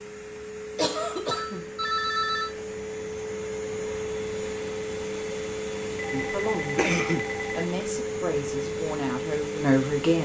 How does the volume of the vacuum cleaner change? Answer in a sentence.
The volume of the vacuum cleaner goes up.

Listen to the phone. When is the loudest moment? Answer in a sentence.
The volume of the phone peaks at 2 seconds.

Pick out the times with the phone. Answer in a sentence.
You can hear the phone from 1.3 to 2.5 s and from 6.0 to 7.7 s.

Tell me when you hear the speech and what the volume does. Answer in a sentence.
You can hear the speech from 6.1 to 10.2 s, getting louder.